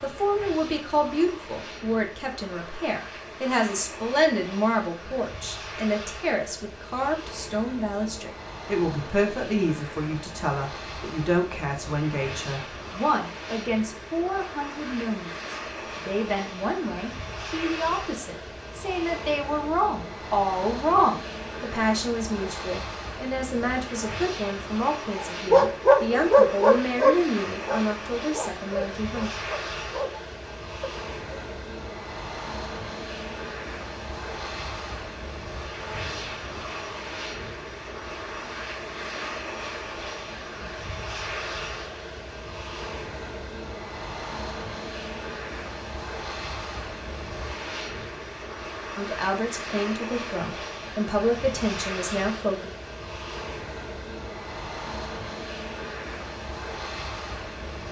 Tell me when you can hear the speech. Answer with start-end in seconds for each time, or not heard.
0.0-29.3, 49.0-52.7.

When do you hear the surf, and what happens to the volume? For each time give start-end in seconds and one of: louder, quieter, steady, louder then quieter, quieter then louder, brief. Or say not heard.
not heard.